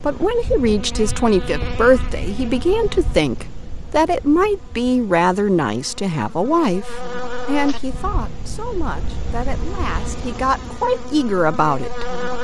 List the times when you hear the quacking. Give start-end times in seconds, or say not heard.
not heard.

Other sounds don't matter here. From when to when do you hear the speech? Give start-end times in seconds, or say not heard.
0.0-12.1.